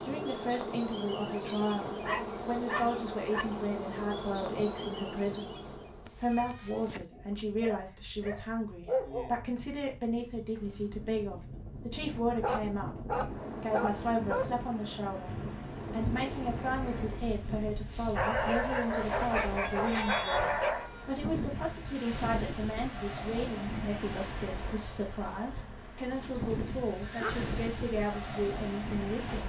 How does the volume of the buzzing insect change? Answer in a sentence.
The volume of the buzzing insect stays about the same.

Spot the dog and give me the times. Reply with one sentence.
The dog can be heard from 2.0 to 3.5 s, from 7.1 to 9.3 s, from 12.4 to 14.6 s, from 18.1 to 20.9 s and from 26.1 to 27.6 s.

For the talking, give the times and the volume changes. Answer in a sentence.
You can hear the talking from 0.0 to 29.4 s, at a steady volume.